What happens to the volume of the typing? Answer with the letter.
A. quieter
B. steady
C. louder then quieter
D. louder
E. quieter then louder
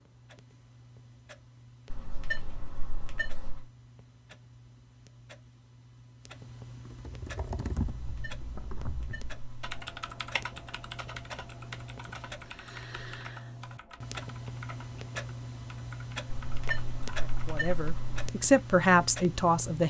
A.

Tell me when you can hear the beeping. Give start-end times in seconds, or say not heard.
1.9-3.7, 8.0-9.8, 16.3-18.3.